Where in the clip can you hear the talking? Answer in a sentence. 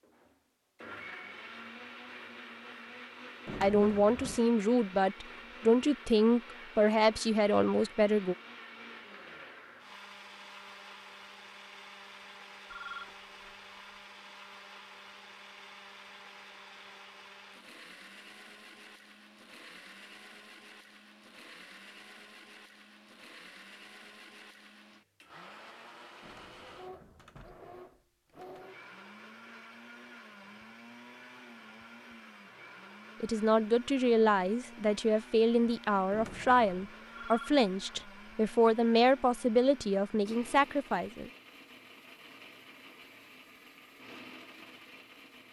The talking can be heard from 3.6 to 8.3 s and from 33.2 to 41.3 s.